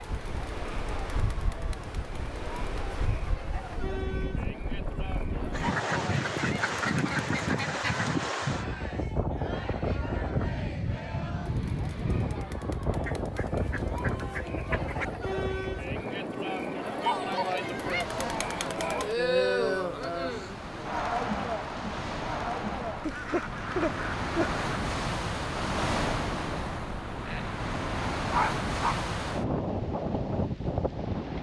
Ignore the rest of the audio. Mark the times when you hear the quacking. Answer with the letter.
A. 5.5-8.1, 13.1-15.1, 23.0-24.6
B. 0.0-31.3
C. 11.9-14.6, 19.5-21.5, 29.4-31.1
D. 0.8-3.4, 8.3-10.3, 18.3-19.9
A.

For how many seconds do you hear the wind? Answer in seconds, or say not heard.
31 s.